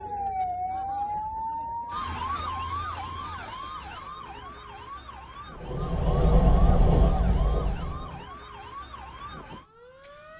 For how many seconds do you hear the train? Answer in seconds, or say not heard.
3 s.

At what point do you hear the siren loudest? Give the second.
1 s.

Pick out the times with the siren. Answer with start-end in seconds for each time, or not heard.
0.0-10.3.